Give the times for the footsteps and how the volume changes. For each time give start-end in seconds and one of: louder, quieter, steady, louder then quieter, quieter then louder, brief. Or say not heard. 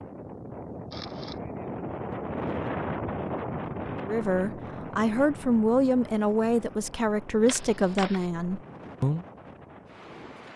not heard.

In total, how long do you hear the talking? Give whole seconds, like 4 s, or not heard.
5 s.